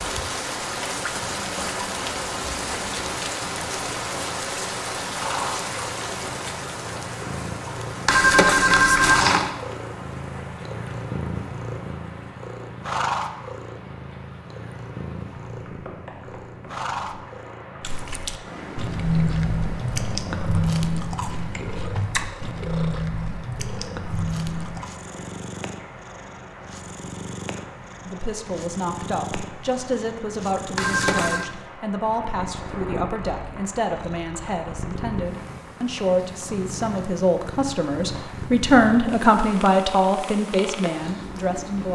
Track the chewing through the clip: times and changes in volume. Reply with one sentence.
You can hear the chewing from 17.8 to 24.9 s, getting quieter.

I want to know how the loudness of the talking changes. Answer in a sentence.
The loudness of the talking goes up.